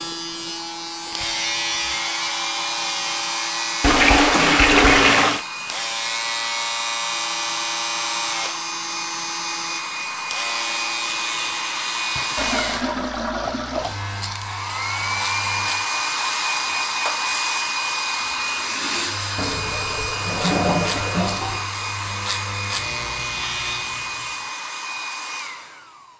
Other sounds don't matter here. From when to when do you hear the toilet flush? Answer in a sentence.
The toilet flush can be heard from 3.8 to 5.5 s, from 12.3 to 13.9 s and from 19.4 to 21.6 s.